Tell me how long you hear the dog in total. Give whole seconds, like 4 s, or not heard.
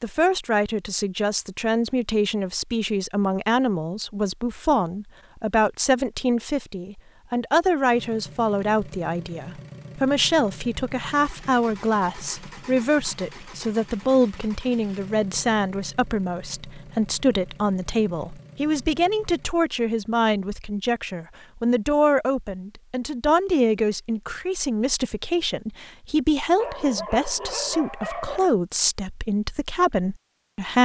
2 s.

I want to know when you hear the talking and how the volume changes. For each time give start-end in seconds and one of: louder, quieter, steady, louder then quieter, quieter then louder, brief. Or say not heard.
0.0-30.8 steady.